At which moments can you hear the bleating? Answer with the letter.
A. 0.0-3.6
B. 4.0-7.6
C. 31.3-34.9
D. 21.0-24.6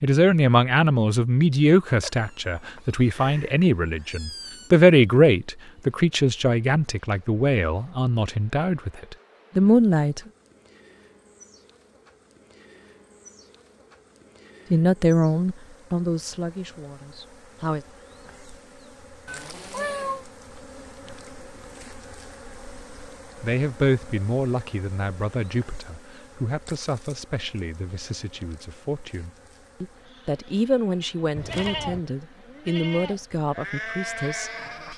C.